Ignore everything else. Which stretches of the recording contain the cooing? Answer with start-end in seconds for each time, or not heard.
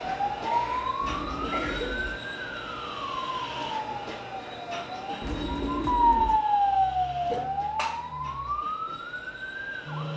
1.0-2.2, 5.2-6.4.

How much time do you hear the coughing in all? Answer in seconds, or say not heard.
2 s.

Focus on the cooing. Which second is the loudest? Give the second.
6 s.